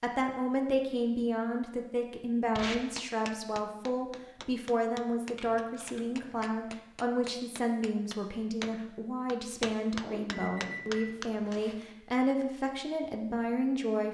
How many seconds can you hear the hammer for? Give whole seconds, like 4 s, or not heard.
9 s.